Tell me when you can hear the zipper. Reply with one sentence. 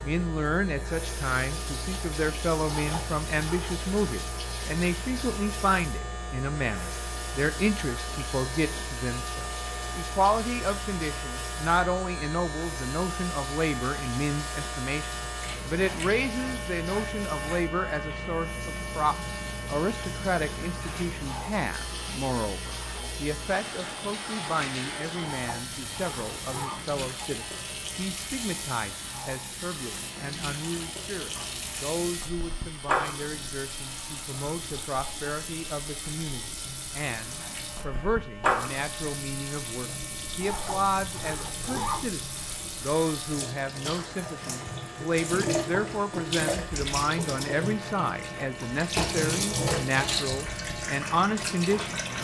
You can hear the zipper from 2.6 to 3.8 s, from 25.2 to 26.8 s and from 40.4 to 42.1 s.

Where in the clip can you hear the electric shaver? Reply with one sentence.
You can hear the electric shaver from 0.0 to 52.1 s.